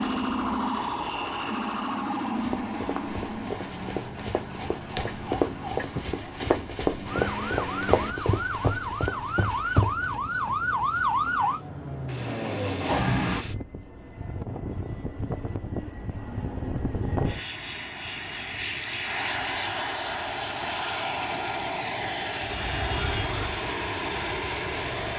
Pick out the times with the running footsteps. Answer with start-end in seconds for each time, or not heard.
2.4-10.2.